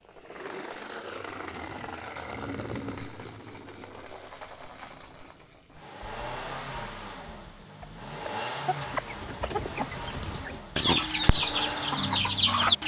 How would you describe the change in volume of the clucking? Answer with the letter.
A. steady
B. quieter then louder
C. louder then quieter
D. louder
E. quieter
B.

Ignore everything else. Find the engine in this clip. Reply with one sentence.
You can hear the engine from 0.0 to 12.8 s.